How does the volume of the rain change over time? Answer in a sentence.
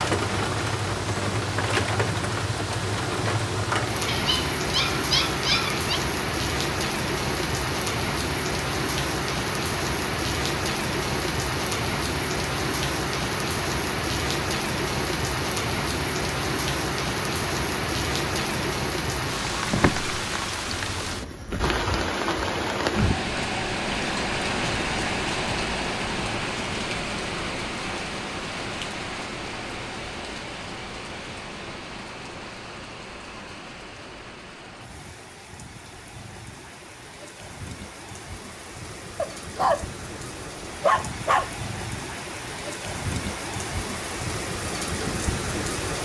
The loudness of the rain goes down.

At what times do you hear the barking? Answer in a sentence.
The barking can be heard from 4.0 to 6.0 s and from 39.1 to 41.5 s.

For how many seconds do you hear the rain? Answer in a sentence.
You can hear the rain for 46 seconds altogether.